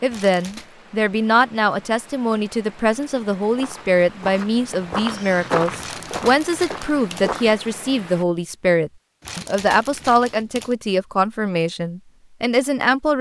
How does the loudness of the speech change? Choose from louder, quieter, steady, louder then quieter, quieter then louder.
steady.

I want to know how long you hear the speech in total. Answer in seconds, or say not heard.
13 s.